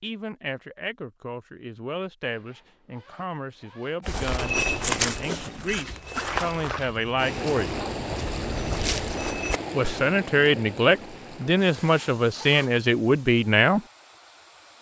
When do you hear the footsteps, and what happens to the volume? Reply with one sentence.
The footsteps can be heard from 4.0 to 10.1 s, getting quieter then louder.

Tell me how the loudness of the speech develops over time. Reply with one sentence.
The loudness of the speech goes up.